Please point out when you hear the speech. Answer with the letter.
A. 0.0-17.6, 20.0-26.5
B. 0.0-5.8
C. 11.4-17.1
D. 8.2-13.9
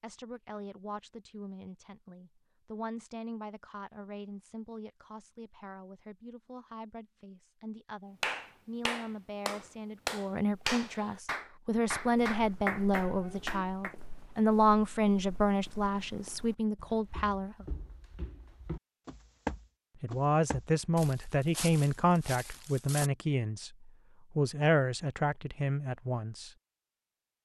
A.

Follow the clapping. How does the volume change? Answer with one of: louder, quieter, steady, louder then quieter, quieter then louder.
steady.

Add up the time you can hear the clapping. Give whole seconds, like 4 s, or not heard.
6 s.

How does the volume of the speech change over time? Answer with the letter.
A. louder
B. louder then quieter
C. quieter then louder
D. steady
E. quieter
A.